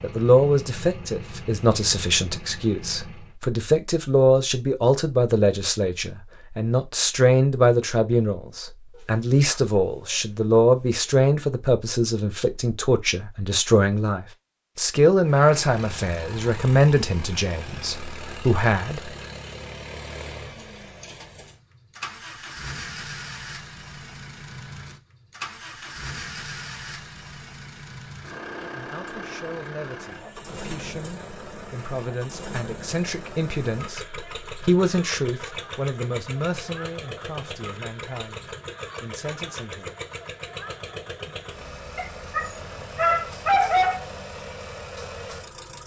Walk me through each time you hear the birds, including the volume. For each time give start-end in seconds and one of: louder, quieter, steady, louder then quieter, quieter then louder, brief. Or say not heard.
not heard.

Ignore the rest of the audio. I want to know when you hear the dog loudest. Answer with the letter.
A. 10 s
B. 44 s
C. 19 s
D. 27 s
B.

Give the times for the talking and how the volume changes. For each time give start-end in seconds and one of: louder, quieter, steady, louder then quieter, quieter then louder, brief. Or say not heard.
0.0-19.1 steady
28.6-40.0 louder then quieter.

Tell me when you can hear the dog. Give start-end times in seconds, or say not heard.
8.9-10.2, 42.0-44.0.